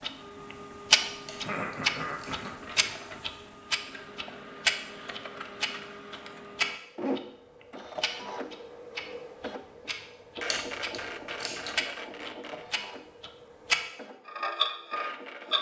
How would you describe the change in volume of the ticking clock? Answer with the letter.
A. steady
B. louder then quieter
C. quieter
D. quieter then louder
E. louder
D.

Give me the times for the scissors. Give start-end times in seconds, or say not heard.
1.2-2.5, 10.5-11.8.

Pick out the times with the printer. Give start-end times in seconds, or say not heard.
0.0-15.5.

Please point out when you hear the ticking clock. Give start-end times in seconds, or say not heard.
0.0-15.5.